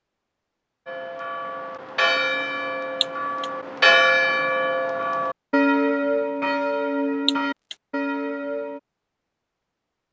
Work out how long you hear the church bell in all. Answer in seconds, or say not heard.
8 s.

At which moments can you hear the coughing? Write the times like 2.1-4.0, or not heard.
3.0-3.5, 7.2-7.8.